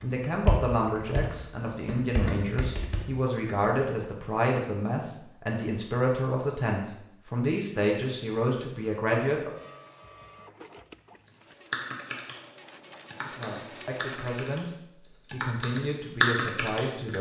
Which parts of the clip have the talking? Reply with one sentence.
You can hear the talking from 0.0 to 9.5 s and from 13.2 to 17.1 s.